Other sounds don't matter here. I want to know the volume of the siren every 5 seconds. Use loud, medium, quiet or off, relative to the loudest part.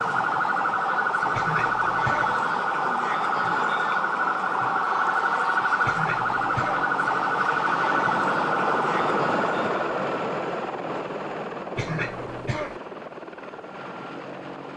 loud, loud, off.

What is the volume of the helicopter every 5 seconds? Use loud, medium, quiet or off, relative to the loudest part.
medium, loud, loud.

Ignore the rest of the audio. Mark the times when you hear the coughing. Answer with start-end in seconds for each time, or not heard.
1.3-2.4, 5.8-6.8, 11.8-12.8.